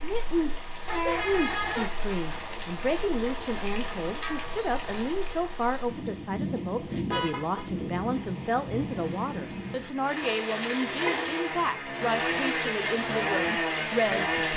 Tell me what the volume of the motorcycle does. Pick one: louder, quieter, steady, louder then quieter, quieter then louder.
louder.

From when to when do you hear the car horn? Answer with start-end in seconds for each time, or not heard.
0.8-1.9, 6.3-7.7, 10.8-11.2.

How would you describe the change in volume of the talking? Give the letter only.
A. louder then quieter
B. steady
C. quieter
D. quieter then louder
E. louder
B.